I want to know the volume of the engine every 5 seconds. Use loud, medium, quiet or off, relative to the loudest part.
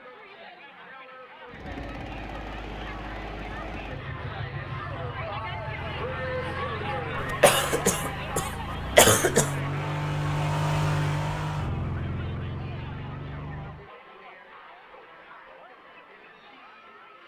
medium, medium, loud, off.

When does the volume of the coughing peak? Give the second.
9 s.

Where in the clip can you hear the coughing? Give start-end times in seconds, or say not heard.
7.2-9.6.